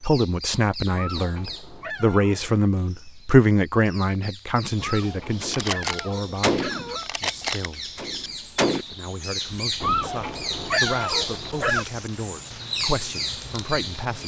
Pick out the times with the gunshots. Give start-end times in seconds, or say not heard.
5.4-8.8.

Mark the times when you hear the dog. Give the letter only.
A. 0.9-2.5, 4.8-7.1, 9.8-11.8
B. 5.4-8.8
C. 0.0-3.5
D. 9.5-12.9
A.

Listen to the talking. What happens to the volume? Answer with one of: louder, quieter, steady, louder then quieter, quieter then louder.
quieter.